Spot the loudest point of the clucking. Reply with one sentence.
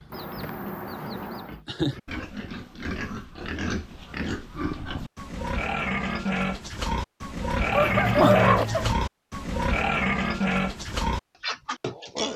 The volume of the clucking peaks at 8 seconds.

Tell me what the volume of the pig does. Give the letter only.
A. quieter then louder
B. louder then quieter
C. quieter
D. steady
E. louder
E.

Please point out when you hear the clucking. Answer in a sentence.
The clucking can be heard from 0.1 to 1.6 s and from 7.7 to 8.9 s.